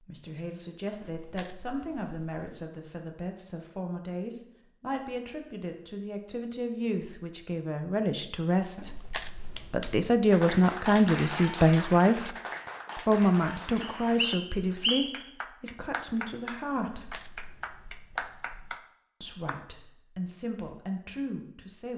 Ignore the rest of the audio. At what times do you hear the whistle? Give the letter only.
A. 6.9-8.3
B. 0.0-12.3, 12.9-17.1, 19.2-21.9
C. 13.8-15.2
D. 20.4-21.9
C.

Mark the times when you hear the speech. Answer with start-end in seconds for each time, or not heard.
0.0-12.3, 12.9-17.1, 19.2-21.9.